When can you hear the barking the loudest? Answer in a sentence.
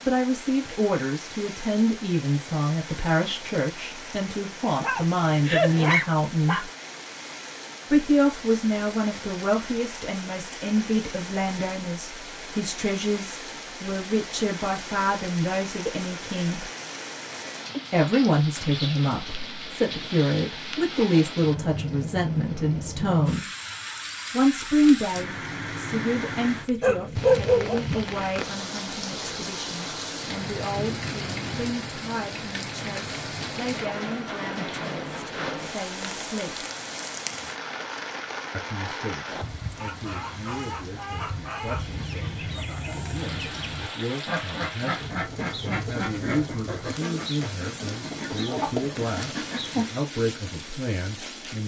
The loudest moment of the barking is at 27 seconds.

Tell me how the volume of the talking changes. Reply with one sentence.
The loudness of the talking goes down.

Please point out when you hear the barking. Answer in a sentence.
The barking can be heard from 4.8 to 6.7 s, from 26.8 to 27.9 s and from 48.5 to 49.0 s.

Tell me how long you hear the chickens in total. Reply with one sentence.
The chickens can be heard for 10 seconds in total.